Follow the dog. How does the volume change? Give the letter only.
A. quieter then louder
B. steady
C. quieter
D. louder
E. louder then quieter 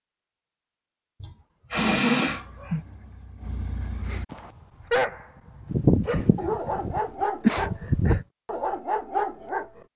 D.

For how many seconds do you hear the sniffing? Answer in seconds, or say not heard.
4 s.